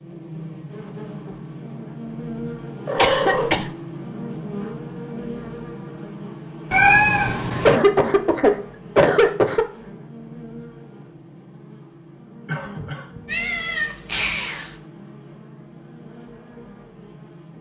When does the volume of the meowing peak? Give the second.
7 s.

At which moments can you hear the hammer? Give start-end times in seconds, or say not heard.
not heard.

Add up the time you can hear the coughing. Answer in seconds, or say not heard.
4 s.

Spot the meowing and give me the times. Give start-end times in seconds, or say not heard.
2.9-3.5, 6.7-7.8, 13.2-14.8.